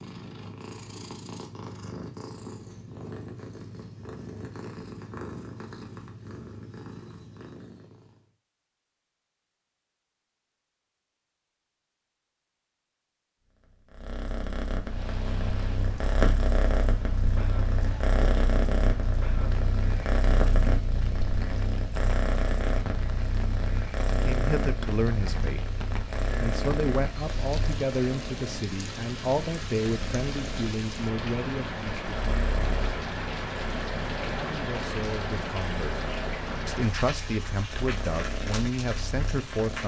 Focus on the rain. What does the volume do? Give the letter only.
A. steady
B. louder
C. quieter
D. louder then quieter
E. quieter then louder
B.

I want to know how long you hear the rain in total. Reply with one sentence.
The rain can be heard for 25 seconds in total.